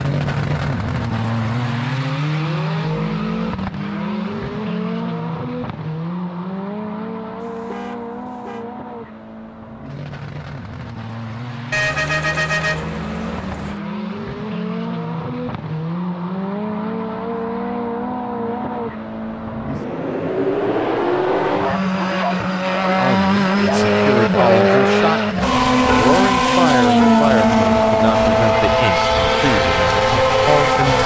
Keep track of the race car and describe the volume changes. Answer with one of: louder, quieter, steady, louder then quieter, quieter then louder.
quieter then louder.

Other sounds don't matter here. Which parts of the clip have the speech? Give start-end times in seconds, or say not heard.
22.9-31.0.